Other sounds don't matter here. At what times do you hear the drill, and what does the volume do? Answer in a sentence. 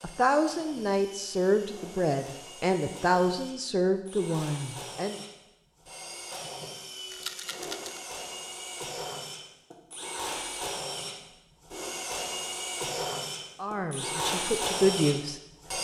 The drill can be heard from 0.0 to 15.7 s, getting louder.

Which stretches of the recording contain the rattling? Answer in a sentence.
The rattling can be heard from 7.1 to 8.0 s.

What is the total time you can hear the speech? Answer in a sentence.
You can hear the speech for 7 seconds altogether.